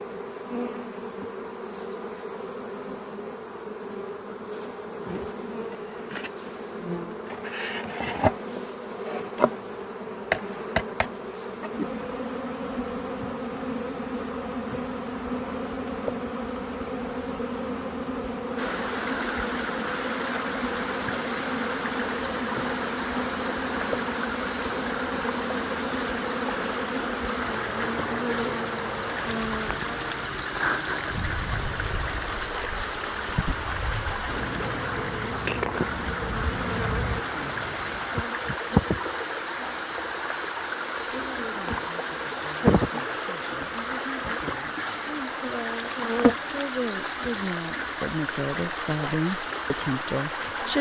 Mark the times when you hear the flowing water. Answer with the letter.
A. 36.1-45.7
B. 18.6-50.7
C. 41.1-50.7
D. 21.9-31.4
B.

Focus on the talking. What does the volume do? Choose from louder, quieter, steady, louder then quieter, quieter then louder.
louder.